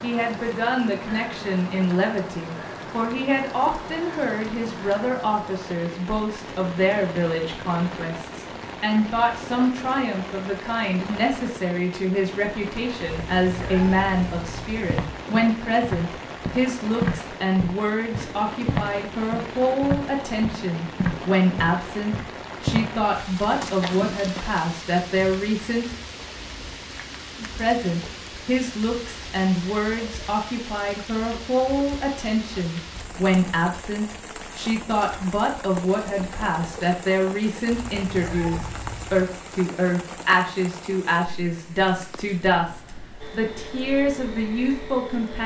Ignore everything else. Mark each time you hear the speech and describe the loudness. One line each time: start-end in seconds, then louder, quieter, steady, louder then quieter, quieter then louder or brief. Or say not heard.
0.0-25.9 steady
27.4-45.4 steady.